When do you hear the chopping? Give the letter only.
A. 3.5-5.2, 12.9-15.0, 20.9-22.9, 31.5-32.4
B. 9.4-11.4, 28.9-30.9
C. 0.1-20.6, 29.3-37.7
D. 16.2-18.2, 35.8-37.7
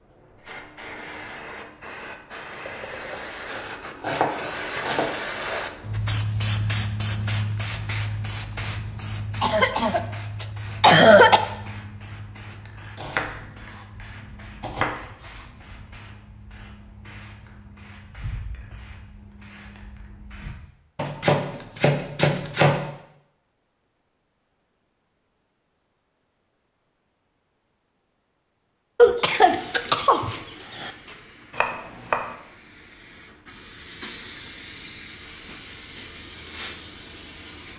A.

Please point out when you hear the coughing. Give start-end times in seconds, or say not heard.
9.4-11.4, 28.9-30.9.